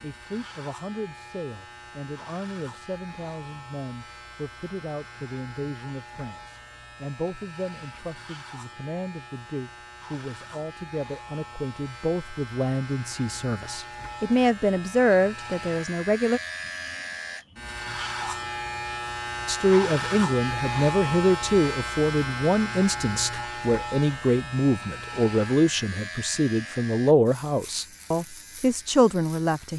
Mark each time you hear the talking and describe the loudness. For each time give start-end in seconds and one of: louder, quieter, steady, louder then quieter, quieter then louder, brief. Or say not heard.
0.0-16.4 louder
19.4-29.7 steady.